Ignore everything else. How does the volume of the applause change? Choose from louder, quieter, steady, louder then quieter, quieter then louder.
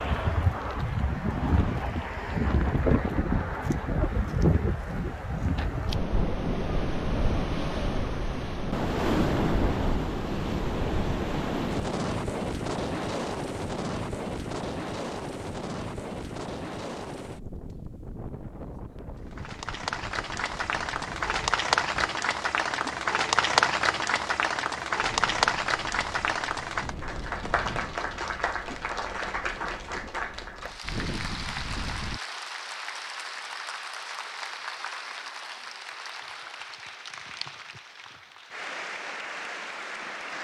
quieter.